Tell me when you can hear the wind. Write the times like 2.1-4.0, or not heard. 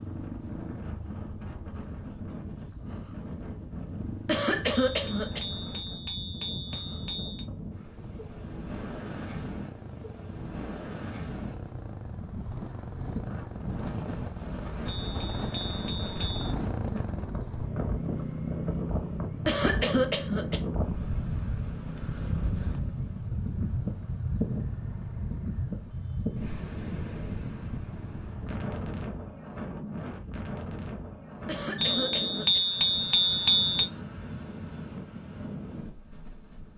0.0-36.7.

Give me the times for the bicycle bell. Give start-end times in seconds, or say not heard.
5.0-7.5, 14.8-16.5, 31.8-33.9.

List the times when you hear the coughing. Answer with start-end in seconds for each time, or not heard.
4.2-5.4, 19.4-20.6, 31.4-32.6.